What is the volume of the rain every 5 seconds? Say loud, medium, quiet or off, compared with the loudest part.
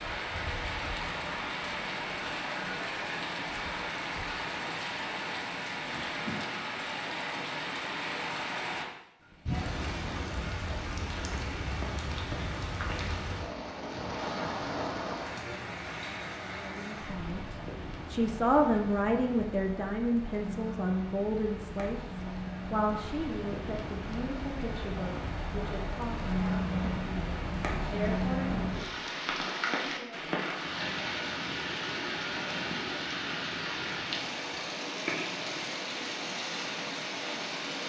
loud, loud, loud, medium, medium, loud, loud, loud.